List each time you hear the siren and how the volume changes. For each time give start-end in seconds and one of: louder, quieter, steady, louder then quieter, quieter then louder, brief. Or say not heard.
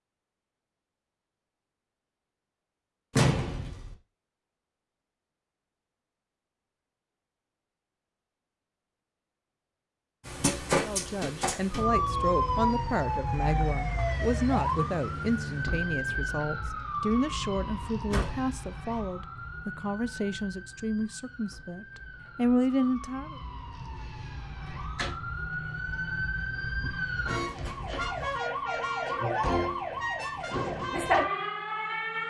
10.2-32.2 quieter then louder.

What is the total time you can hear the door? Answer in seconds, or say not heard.
2 s.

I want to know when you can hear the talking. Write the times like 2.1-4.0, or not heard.
10.8-23.4.